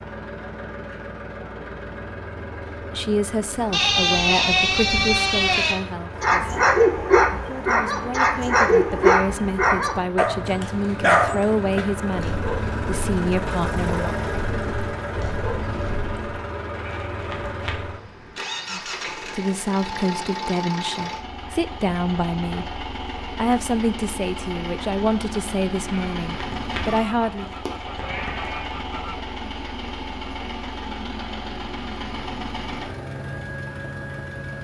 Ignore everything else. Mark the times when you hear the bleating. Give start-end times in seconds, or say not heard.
3.7-5.8, 16.8-18.3, 25.9-28.8.